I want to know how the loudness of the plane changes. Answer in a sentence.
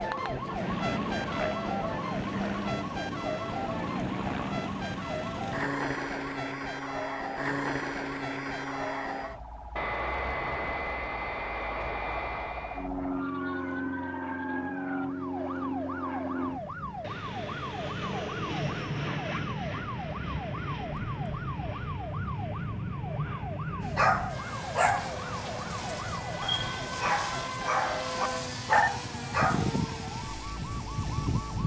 The volume of the plane stays about the same.